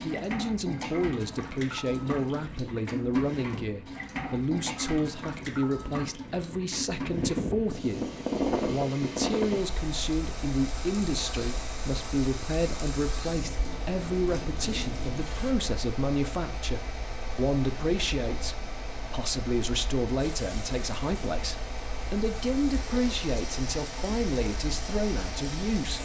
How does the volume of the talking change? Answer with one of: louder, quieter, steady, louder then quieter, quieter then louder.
steady.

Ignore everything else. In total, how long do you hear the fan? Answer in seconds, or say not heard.
26 s.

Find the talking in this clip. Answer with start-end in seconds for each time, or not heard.
0.0-25.9.